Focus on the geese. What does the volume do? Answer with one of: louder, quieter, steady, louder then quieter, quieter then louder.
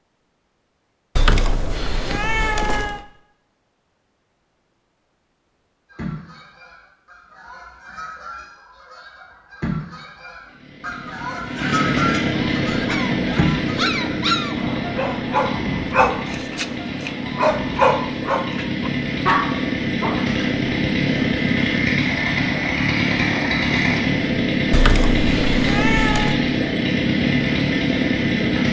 louder then quieter.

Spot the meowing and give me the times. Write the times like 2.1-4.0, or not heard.
1.1-3.0, 24.7-26.4.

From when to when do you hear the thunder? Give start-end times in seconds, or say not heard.
not heard.